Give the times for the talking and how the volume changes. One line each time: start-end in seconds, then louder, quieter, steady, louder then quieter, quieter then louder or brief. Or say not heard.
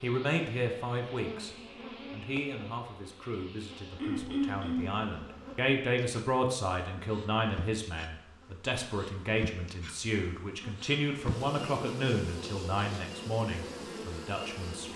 0.0-14.9 steady.